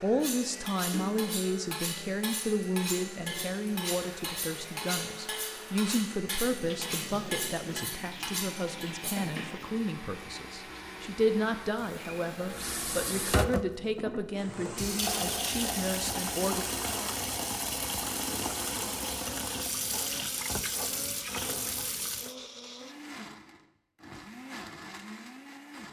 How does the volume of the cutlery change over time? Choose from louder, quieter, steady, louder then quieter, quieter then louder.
steady.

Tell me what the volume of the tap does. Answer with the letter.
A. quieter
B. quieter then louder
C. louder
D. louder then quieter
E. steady
C.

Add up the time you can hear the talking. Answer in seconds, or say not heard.
17 s.